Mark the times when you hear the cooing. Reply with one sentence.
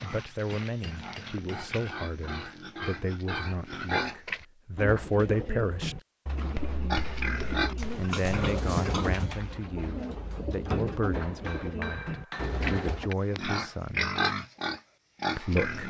The cooing can be heard from 4.8 to 13.1 s.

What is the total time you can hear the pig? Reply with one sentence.
You can hear the pig for 10 seconds altogether.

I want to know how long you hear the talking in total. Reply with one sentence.
The talking can be heard for 13 seconds in total.